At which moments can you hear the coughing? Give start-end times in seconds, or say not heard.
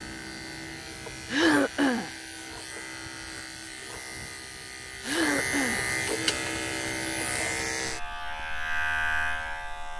1.3-2.1, 5.0-5.8.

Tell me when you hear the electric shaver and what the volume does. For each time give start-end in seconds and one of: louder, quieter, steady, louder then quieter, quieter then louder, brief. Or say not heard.
0.0-9.9 louder.